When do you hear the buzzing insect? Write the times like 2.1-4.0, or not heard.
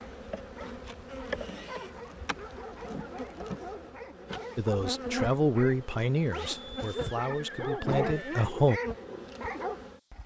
0.0-10.2.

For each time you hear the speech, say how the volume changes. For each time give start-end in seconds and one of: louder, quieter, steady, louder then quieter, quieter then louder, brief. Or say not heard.
4.5-8.8 quieter then louder.